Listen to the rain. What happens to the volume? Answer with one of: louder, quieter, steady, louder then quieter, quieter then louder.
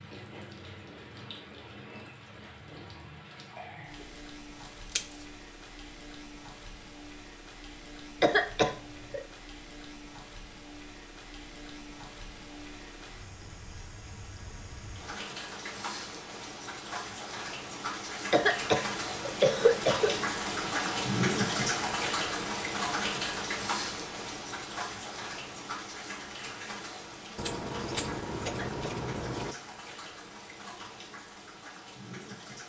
louder then quieter.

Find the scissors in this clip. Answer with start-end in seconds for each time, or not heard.
27.4-29.6.